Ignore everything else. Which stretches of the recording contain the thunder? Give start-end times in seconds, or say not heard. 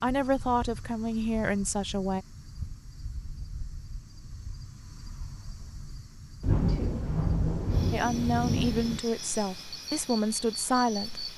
6.4-9.0.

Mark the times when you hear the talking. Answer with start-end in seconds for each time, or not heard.
0.0-2.2, 7.9-11.3.